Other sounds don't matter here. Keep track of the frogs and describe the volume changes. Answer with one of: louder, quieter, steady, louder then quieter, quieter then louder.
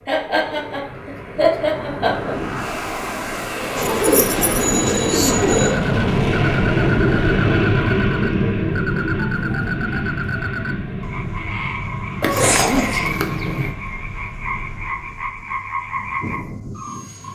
steady.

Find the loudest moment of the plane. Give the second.
7 s.